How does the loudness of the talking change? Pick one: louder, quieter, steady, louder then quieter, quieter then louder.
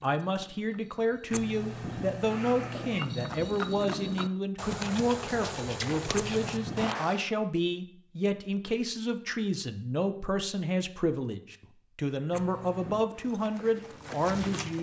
steady.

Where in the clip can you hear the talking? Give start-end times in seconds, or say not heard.
0.0-14.7.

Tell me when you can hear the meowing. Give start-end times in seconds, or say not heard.
1.3-3.1, 6.1-7.0, 12.3-13.1.